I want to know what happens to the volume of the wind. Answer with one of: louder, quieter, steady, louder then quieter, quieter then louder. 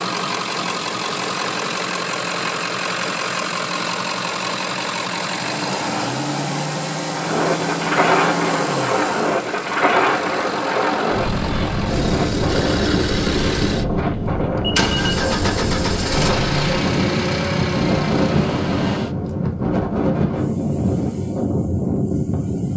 steady.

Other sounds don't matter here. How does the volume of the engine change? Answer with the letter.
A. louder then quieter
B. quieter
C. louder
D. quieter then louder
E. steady
E.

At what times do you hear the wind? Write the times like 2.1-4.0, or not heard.
7.1-22.7.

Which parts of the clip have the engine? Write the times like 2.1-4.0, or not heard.
0.0-19.1.